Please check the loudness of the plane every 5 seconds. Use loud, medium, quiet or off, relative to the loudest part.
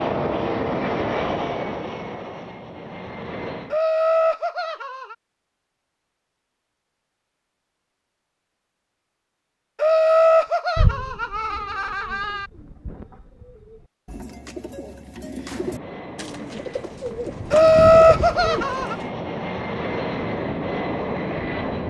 loud, off, off, medium, loud.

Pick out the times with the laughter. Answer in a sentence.
You can hear the laughter from 3.7 to 5.2 s, from 9.8 to 12.5 s and from 17.5 to 18.9 s.